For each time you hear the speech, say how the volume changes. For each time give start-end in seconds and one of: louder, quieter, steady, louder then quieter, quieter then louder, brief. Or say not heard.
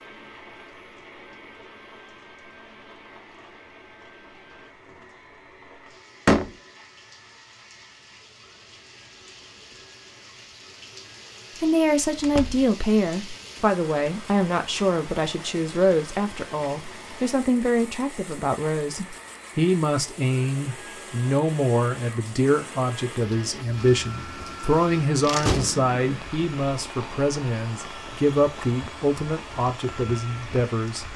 11.6-31.1 steady.